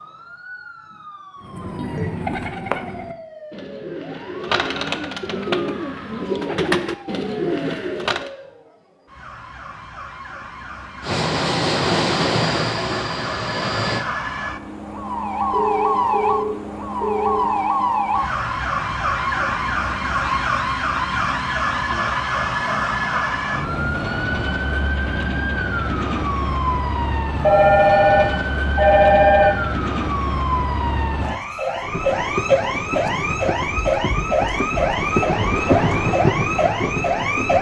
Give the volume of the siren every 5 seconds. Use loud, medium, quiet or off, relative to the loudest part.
quiet, quiet, medium, loud, loud, loud, loud, loud.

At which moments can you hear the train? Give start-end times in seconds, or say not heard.
11.0-14.1, 31.8-37.5.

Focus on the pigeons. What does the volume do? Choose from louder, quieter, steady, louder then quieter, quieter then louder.
quieter then louder.